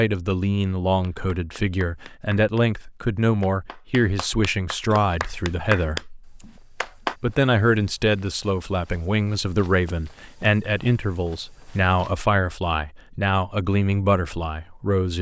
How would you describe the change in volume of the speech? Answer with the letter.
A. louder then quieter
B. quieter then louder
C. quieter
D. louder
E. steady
E.